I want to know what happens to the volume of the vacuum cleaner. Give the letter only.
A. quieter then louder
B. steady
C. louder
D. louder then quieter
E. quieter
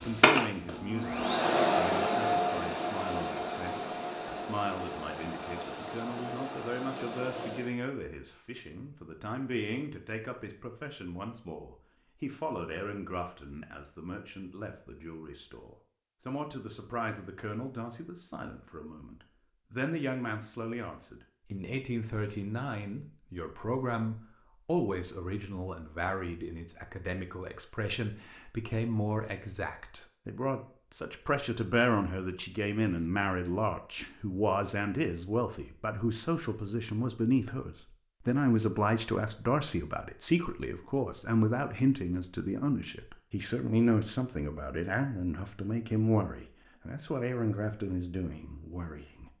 E.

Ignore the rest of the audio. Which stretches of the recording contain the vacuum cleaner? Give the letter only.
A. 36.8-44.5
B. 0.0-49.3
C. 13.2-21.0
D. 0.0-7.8
D.